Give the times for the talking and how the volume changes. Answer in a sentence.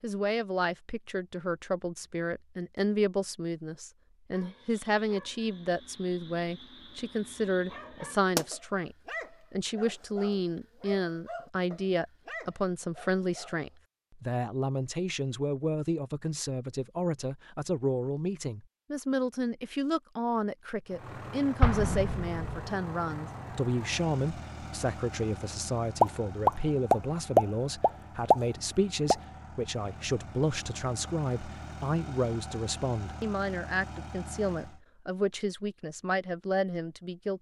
The talking can be heard from 0.0 to 37.3 s, at a steady volume.